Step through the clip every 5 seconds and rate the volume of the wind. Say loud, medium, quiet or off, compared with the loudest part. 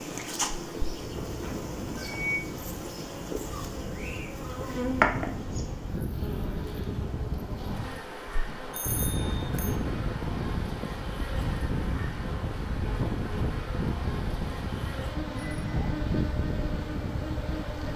medium, loud, loud, loud.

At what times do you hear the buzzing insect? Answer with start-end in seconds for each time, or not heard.
0.0-17.9.